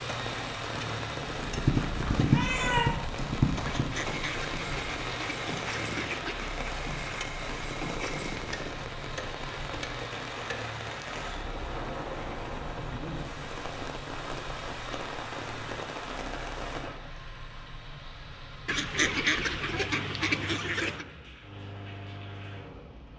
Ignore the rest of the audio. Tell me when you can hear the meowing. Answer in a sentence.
You can hear the meowing from 2.1 to 3.0 s.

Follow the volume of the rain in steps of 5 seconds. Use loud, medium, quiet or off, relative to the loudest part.
loud, loud, loud, loud, quiet.